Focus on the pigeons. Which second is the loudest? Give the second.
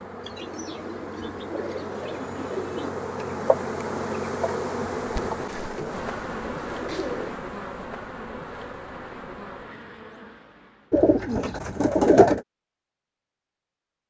12 s.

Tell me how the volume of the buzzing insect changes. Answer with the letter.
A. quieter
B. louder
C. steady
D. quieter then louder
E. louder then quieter
E.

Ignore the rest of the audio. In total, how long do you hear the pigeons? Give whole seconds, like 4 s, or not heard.
6 s.